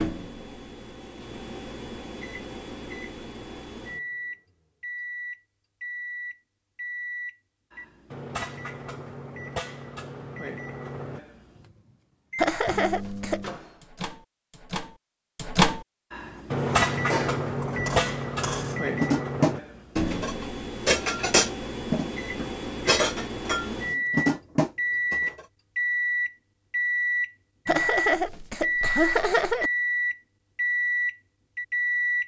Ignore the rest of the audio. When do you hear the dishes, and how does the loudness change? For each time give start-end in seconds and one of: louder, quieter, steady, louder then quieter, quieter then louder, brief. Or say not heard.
16.2-25.4 louder.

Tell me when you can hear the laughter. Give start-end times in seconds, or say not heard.
12.3-13.4, 27.6-29.7.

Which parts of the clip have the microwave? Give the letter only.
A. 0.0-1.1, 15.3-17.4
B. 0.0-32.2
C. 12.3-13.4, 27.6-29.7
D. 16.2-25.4
B.